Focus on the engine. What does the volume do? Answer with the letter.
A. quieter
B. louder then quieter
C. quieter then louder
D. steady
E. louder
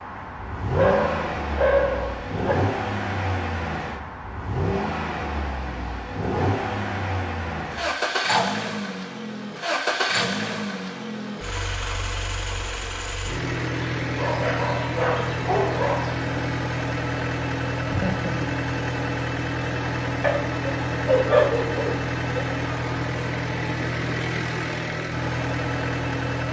D.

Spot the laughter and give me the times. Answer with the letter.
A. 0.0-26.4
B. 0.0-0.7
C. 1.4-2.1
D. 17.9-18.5
D.